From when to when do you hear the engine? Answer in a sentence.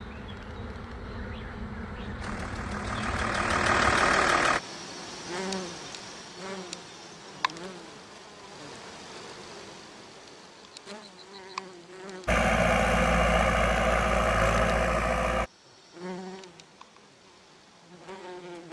You can hear the engine from 2.2 to 4.6 s and from 12.2 to 15.5 s.